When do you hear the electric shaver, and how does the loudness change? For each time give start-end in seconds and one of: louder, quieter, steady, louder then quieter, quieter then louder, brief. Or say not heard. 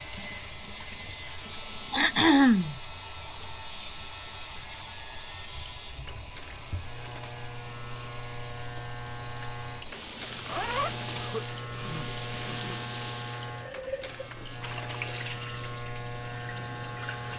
0.0-17.3 louder.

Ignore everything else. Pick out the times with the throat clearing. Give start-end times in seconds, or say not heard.
1.9-2.8, 11.1-12.8.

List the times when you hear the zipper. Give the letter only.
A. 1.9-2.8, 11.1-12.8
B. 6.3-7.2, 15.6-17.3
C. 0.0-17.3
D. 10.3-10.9
D.